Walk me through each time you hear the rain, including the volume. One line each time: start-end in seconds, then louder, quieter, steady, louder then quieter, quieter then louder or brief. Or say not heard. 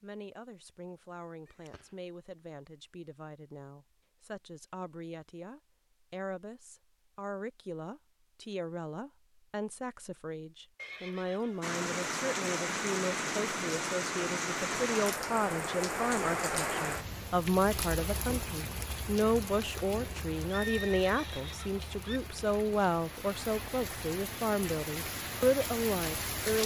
11.6-26.6 quieter then louder.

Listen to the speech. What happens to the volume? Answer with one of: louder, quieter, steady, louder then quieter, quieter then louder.
louder.